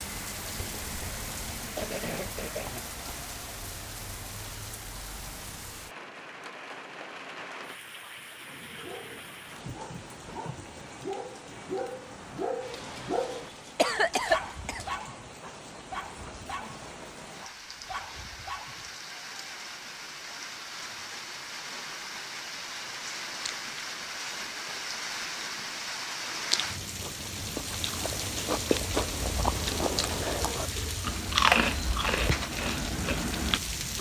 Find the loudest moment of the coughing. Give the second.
14 s.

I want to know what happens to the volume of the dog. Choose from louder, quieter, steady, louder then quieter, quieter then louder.
louder then quieter.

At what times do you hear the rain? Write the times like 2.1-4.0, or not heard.
0.0-33.9.